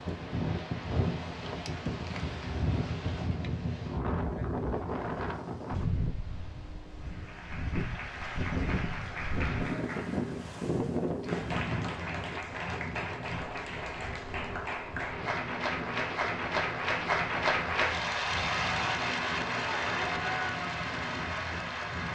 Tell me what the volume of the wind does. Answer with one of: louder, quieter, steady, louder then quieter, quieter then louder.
quieter.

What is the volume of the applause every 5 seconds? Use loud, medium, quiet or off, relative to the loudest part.
off, medium, medium, loud, loud.